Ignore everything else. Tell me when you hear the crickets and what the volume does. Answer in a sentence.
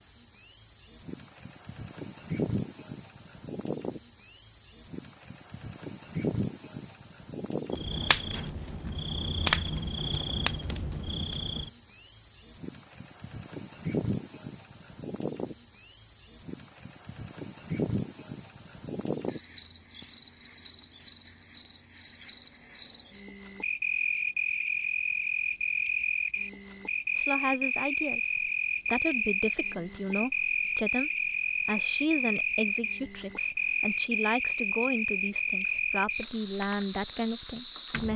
You can hear the crickets from 0.0 to 38.1 s, at a steady volume.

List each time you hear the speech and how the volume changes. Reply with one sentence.
You can hear the speech from 27.1 to 38.1 s, at a steady volume.